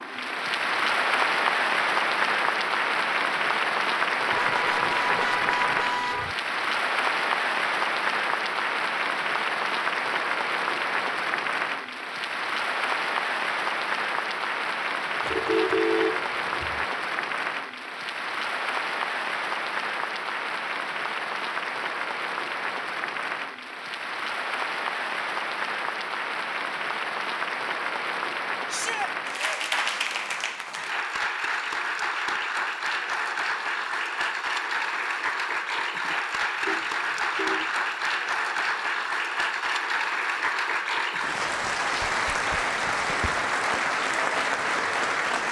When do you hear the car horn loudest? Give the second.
16 s.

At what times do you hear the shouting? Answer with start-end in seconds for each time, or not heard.
28.6-29.1.